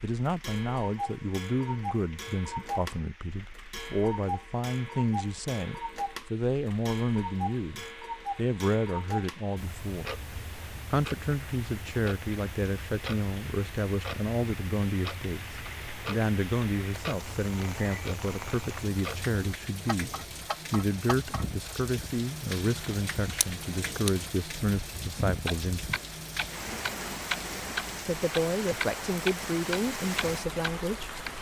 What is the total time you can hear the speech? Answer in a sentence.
The speech can be heard for 28 seconds in total.